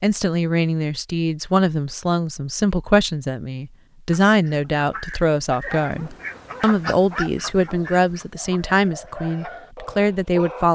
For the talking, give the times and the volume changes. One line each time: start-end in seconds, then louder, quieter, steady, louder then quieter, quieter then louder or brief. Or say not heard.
0.0-10.6 steady.